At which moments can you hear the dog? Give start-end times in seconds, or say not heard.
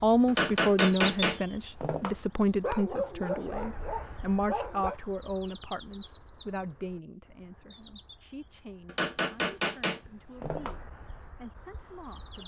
2.6-5.0.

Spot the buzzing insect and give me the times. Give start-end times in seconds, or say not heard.
not heard.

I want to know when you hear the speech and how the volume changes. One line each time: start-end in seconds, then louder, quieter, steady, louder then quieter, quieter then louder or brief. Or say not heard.
0.0-12.4 quieter.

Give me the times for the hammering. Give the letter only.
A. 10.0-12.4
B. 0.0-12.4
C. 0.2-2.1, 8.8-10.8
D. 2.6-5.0
C.